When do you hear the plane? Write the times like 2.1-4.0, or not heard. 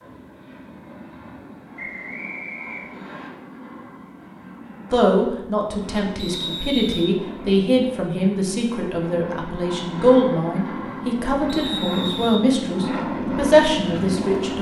0.0-14.5.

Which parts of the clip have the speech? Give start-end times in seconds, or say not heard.
4.9-14.5.